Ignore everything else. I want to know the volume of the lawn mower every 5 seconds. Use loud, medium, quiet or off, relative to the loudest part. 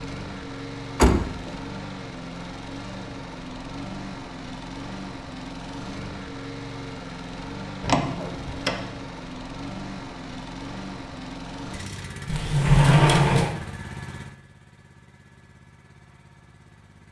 loud, loud, loud, quiet.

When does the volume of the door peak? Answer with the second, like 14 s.
13 s.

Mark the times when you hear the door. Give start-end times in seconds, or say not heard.
0.9-1.5, 7.8-8.8, 12.2-13.6.